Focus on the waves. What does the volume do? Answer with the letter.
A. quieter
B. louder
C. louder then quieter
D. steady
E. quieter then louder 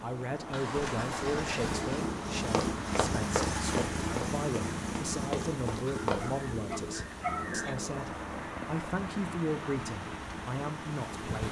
D.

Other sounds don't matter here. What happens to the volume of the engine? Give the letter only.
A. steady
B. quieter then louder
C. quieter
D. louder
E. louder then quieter
C.